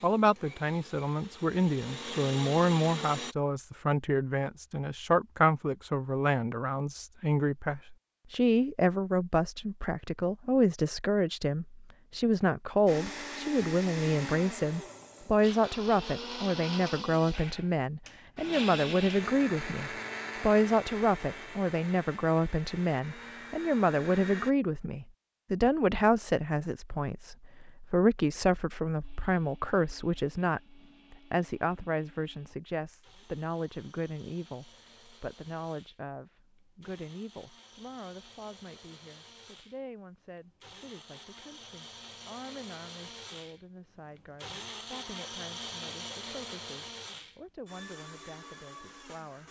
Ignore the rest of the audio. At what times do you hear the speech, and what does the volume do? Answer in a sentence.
You can hear the speech from 0.0 to 49.4 s, getting quieter.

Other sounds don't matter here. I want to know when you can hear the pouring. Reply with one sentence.
You can't hear the pouring here.